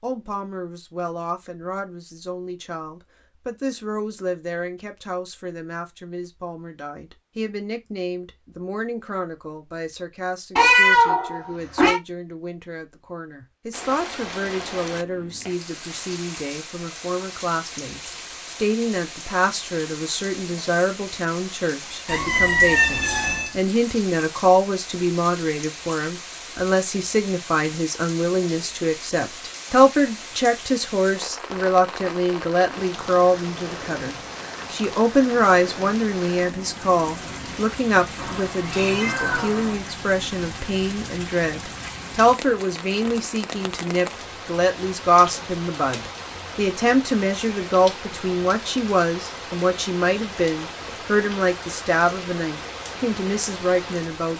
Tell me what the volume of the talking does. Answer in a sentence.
The volume of the talking goes up.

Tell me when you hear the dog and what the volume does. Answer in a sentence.
The dog can't be heard in this clip.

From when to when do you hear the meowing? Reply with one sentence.
The meowing can be heard from 10.6 to 12.0 s, from 22.1 to 23.5 s and from 38.1 to 39.8 s.